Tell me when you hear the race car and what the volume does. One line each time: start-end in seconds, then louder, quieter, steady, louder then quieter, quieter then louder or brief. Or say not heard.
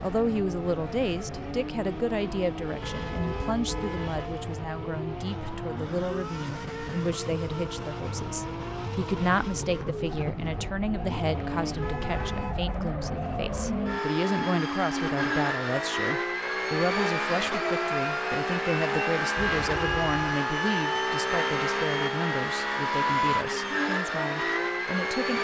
0.0-25.3 louder.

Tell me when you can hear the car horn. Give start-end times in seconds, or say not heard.
2.8-4.3, 11.8-12.8, 19.4-20.2.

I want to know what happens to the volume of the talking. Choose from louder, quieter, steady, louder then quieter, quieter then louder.
steady.